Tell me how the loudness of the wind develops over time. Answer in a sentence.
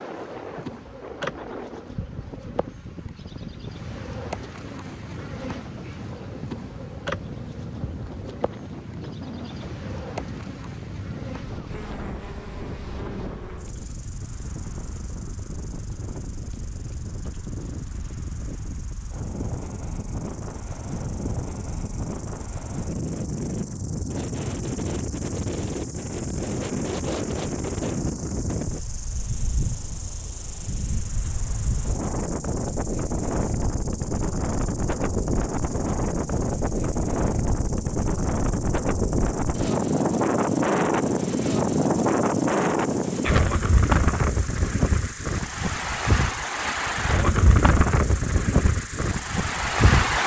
The loudness of the wind goes up.